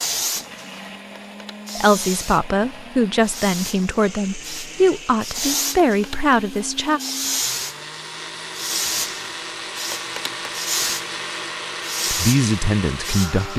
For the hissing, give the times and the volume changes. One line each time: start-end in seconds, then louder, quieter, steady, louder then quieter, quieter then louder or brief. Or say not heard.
0.0-13.5 louder.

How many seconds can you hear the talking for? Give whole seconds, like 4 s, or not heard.
7 s.